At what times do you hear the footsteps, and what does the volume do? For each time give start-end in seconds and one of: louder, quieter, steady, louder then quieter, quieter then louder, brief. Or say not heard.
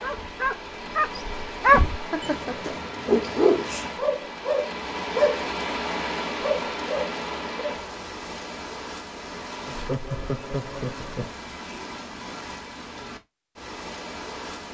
not heard.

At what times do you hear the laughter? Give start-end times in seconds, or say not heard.
1.9-2.8, 9.7-11.3.